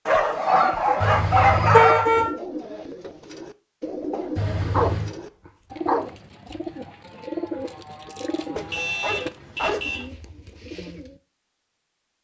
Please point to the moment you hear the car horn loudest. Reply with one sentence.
The volume of the car horn peaks at 2 seconds.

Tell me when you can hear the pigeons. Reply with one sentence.
The pigeons can be heard from 0.3 to 11.2 s.